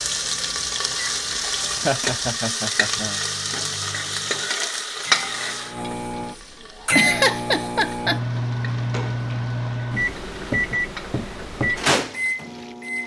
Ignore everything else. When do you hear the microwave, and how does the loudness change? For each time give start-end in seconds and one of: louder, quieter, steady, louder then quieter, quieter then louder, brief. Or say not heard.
0.0-13.0 louder.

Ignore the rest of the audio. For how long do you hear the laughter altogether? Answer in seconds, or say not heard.
3 s.